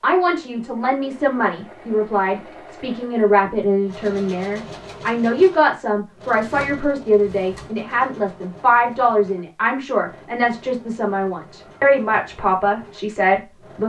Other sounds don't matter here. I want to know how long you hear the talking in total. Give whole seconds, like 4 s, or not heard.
14 s.